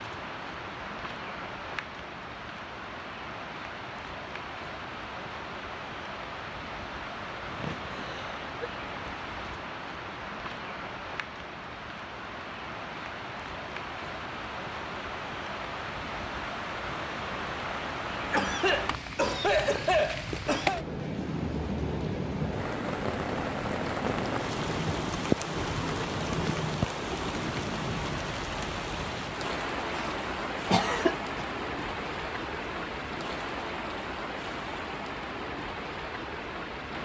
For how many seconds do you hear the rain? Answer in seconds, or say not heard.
37 s.